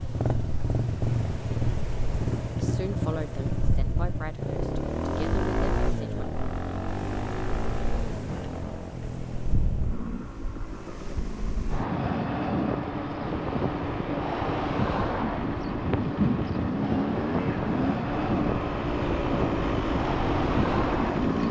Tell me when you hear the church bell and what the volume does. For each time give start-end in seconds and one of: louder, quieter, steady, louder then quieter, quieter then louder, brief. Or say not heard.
not heard.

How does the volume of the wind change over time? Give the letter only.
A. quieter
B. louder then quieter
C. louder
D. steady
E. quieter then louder
C.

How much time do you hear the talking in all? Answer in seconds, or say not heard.
4 s.